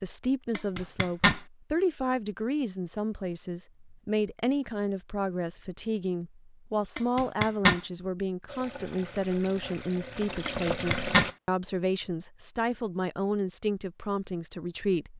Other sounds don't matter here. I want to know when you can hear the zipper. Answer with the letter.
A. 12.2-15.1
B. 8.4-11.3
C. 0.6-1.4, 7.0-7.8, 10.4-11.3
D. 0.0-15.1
C.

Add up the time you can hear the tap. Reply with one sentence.
The tap can be heard for 3 seconds in total.